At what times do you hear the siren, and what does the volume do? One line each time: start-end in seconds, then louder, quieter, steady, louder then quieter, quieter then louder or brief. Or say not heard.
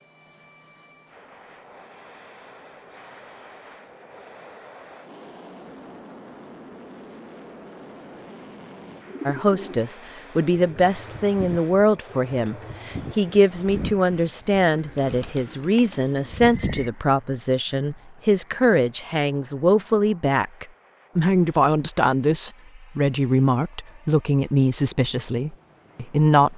not heard.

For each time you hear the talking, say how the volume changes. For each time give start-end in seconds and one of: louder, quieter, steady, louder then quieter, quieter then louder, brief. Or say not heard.
9.2-26.5 steady.